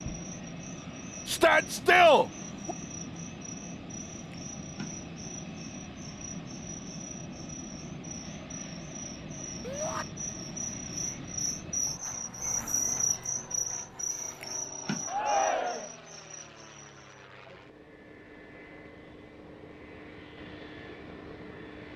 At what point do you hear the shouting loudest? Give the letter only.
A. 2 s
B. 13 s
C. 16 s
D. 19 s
A.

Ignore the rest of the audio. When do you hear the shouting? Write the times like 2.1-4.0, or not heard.
1.2-2.8, 9.6-10.1, 15.1-15.9.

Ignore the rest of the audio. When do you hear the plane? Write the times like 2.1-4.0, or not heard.
0.0-21.9.